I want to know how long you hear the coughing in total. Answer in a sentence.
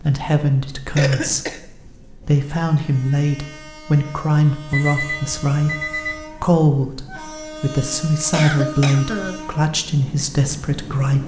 You can hear the coughing for 2 seconds altogether.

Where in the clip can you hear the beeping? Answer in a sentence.
The beeping can be heard from 4.7 to 6.2 s.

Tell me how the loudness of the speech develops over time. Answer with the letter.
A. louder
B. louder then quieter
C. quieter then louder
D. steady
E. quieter
D.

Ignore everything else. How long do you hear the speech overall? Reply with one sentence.
The speech can be heard for 11 seconds in total.